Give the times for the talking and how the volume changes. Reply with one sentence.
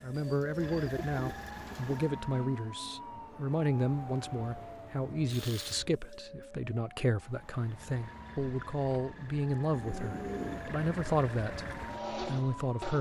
The talking can be heard from 0.0 to 12.9 s, at a steady volume.